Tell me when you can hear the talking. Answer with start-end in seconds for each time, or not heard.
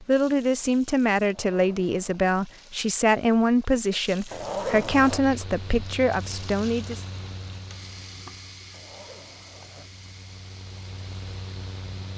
0.0-7.0.